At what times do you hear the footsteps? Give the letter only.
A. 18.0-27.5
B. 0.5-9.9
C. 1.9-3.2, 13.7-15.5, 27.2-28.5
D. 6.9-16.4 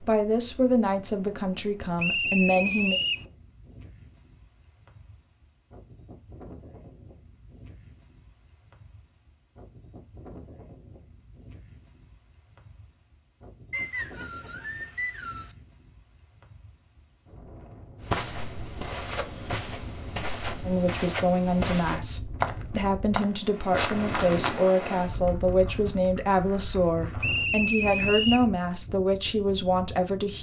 A.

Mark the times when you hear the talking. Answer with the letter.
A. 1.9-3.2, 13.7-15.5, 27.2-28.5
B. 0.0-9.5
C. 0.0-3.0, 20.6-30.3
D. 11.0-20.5
C.